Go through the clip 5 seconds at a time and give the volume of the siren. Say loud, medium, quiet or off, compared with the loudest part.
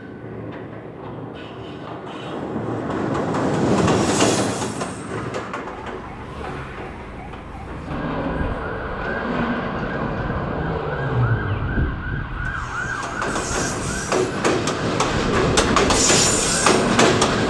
off, loud, loud, loud.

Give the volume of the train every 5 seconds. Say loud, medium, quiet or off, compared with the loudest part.
medium, quiet, medium, loud.